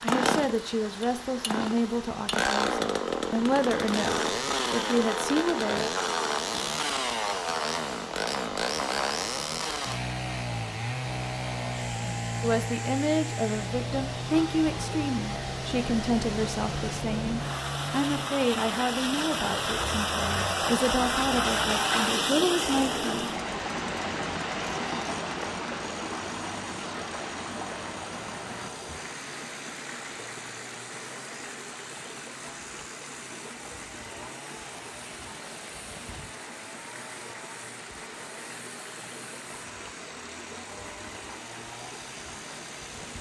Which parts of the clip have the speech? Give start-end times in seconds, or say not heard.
0.0-5.9, 12.4-23.3.